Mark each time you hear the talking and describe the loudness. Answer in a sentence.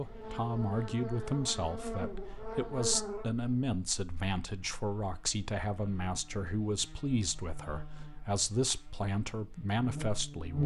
You can hear the talking from 0.0 to 10.6 s, at a steady volume.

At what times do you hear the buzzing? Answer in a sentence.
You can hear the buzzing from 0.0 to 10.6 s.